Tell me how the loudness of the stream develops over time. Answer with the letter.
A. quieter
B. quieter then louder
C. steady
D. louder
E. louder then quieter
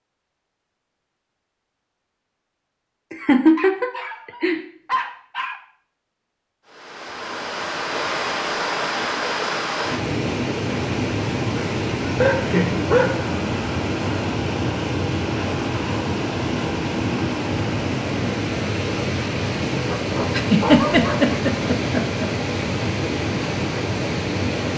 C.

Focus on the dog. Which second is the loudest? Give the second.
13 s.